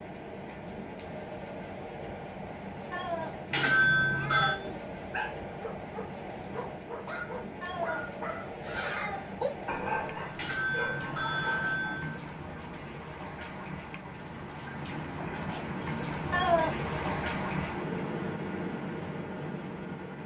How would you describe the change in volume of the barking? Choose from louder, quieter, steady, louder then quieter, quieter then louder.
louder then quieter.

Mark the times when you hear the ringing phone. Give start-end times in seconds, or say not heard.
3.5-4.6, 10.3-12.2.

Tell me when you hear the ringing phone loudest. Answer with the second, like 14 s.
4 s.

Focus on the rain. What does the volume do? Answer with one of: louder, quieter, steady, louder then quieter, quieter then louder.
louder.